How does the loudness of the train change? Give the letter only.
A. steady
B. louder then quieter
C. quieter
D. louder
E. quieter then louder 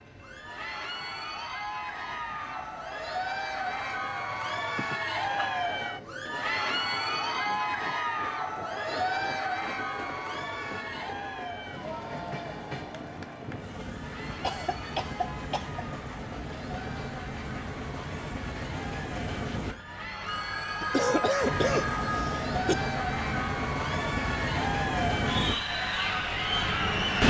D.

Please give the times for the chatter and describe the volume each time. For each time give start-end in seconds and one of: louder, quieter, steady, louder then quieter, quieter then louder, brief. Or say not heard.
0.1-27.2 quieter then louder.